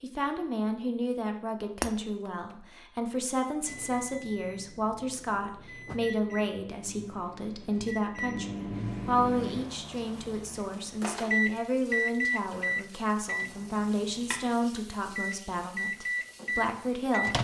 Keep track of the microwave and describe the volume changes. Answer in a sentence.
The loudness of the microwave goes up.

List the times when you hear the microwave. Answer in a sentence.
The microwave can be heard from 3.6 to 17.3 s.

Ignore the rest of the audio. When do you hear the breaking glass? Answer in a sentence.
The breaking glass can be heard from 1.8 to 2.5 s.